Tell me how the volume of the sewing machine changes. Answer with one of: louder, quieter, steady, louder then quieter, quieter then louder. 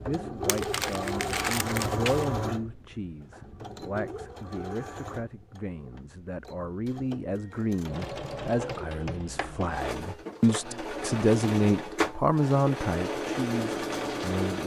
quieter then louder.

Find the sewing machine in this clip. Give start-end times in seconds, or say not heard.
0.0-14.6.